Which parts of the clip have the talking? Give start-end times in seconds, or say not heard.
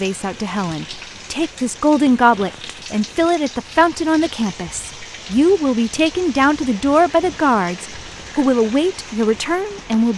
0.0-10.1.